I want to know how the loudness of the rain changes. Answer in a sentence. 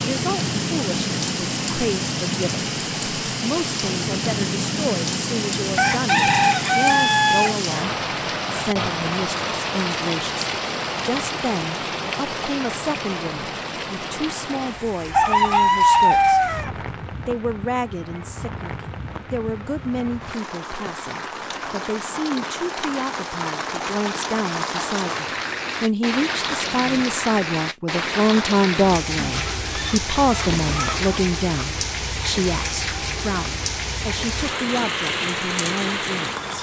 The loudness of the rain goes down, then up.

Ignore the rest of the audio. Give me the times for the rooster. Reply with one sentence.
You can hear the rooster from 5.8 to 7.5 s, from 15.1 to 16.7 s and from 29.1 to 31.1 s.